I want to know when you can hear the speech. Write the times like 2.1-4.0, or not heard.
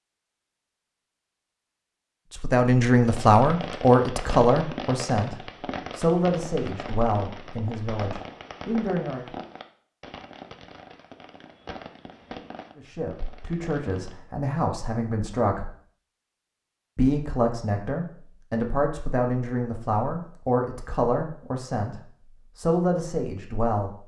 2.4-9.2, 12.8-15.7, 16.9-24.0.